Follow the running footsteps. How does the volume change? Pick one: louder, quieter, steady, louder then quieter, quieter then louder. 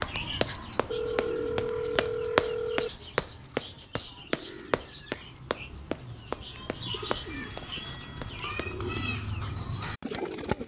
louder then quieter.